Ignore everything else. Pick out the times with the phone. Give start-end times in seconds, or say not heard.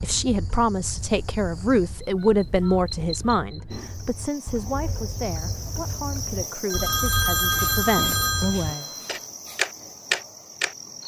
0.8-3.4, 6.7-9.2.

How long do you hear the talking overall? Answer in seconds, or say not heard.
9 s.